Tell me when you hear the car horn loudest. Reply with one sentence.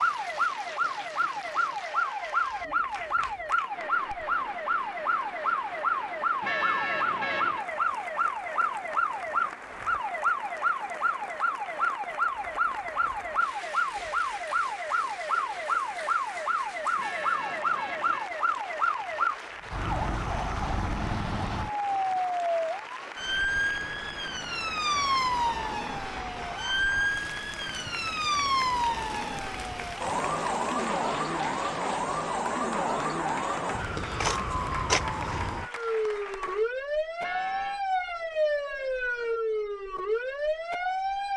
The volume of the car horn peaks at 7 seconds.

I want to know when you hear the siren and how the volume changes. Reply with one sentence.
The siren can be heard from 0.0 to 41.3 s, at a steady volume.